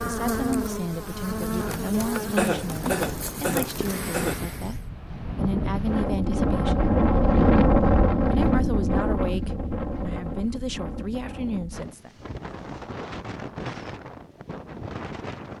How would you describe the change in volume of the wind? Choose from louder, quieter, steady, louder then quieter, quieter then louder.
louder then quieter.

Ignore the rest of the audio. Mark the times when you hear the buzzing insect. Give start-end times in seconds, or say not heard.
0.0-4.8.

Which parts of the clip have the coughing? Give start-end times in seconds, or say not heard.
2.4-4.3.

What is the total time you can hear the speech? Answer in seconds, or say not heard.
11 s.